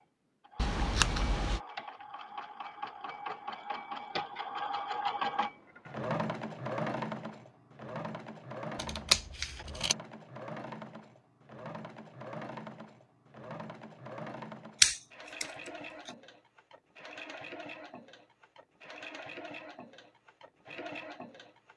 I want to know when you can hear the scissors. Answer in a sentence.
The scissors can be heard from 0.6 to 1.6 s, from 8.8 to 9.9 s and from 14.8 to 16.1 s.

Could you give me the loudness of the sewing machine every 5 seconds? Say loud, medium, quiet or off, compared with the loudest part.
loud, loud, medium, medium, medium.